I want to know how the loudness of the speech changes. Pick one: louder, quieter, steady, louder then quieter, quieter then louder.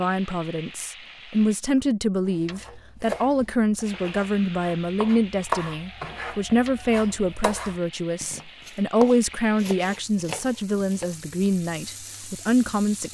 steady.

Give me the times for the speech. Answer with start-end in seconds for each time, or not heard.
0.0-13.1.